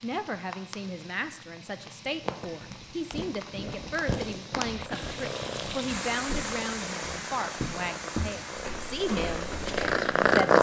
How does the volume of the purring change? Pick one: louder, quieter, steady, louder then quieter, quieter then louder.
louder.